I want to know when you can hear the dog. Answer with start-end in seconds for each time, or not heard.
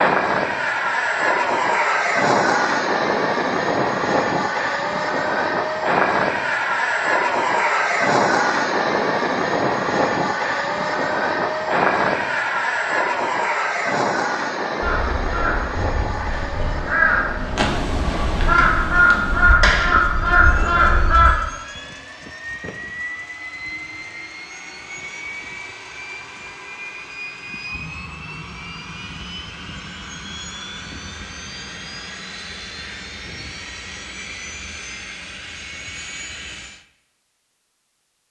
not heard.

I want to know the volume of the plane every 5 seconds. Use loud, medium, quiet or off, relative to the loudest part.
loud, loud, loud, medium, quiet, quiet, quiet, quiet.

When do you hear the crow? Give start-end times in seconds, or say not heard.
14.8-21.4.